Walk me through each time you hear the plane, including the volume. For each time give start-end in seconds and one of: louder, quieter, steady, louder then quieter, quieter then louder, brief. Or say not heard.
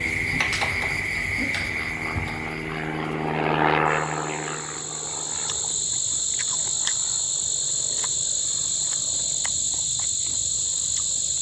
0.0-11.3 louder then quieter.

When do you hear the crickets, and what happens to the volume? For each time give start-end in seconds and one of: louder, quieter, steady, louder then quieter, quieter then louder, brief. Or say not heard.
0.0-11.3 quieter then louder.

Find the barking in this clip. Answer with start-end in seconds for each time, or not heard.
not heard.